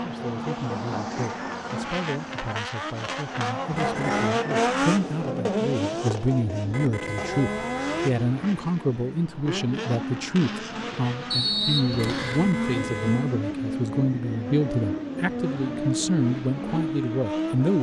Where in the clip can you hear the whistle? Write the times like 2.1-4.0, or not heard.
11.3-12.4.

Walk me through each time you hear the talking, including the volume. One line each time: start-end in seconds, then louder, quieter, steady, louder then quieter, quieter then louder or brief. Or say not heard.
0.0-17.7 louder.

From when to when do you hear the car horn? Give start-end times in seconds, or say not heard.
3.6-4.3, 6.7-8.7, 11.9-13.3.